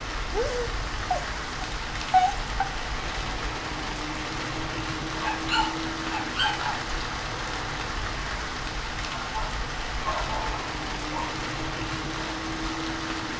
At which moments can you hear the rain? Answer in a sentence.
The rain can be heard from 0.0 to 13.3 s.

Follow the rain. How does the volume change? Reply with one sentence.
The loudness of the rain stays about the same.